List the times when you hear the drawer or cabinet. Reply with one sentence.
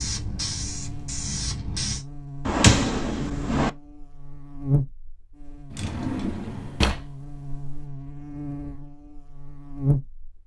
You can hear the drawer or cabinet from 2.5 to 3.7 s and from 5.7 to 7.8 s.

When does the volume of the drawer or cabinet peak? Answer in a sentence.
The volume of the drawer or cabinet peaks at 3 seconds.